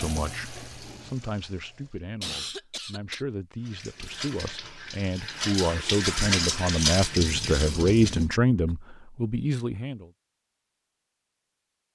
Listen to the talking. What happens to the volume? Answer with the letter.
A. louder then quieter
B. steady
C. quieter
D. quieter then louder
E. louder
E.